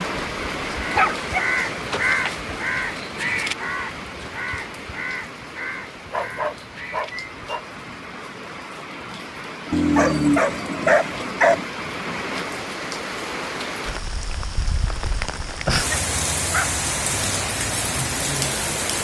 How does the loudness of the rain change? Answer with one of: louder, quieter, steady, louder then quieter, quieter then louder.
quieter then louder.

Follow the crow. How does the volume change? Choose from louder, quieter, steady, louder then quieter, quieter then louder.
quieter.